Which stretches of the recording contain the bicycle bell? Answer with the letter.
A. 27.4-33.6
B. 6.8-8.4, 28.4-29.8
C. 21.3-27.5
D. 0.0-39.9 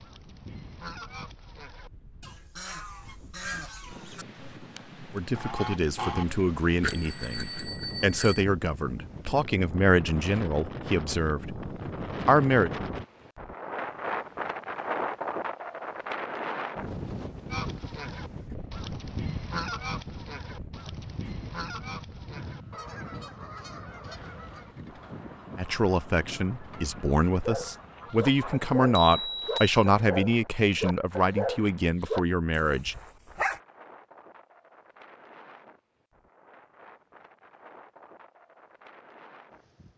B.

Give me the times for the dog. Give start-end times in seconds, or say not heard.
27.4-33.6.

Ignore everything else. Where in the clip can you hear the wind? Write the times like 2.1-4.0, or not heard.
0.0-39.9.